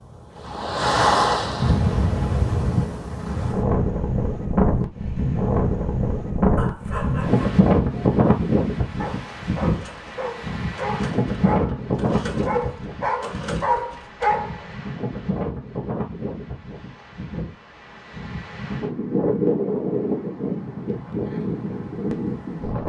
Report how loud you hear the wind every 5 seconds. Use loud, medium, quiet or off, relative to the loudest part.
loud, loud, medium, medium, medium.